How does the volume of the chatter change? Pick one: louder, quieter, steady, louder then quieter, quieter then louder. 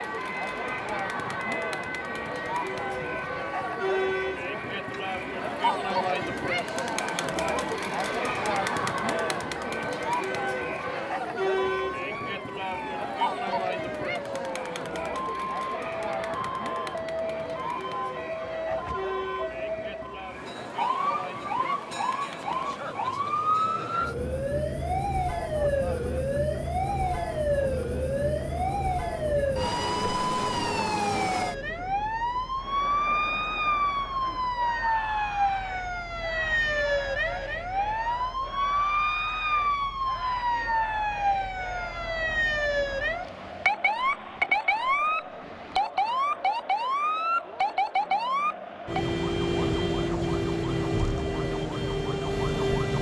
quieter.